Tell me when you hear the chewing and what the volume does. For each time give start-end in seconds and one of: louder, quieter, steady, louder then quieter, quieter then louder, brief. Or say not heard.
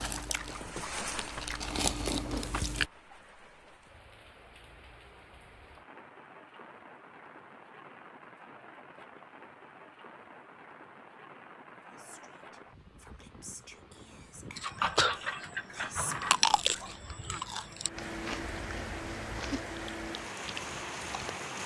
0.0-2.9 brief
14.6-21.3 quieter.